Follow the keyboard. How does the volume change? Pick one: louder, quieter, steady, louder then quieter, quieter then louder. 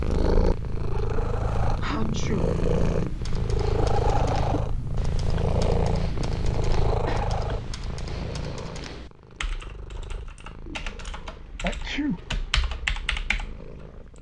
louder.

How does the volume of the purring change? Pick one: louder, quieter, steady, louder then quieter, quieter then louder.
quieter.